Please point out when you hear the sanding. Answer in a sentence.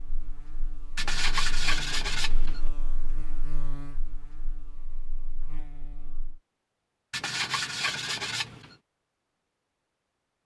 You can hear the sanding from 0.9 to 2.6 s and from 7.1 to 8.8 s.